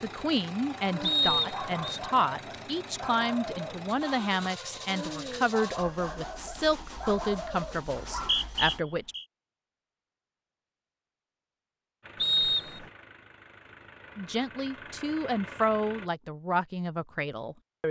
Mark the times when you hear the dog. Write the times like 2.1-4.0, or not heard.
0.8-8.4.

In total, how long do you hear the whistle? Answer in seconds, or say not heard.
3 s.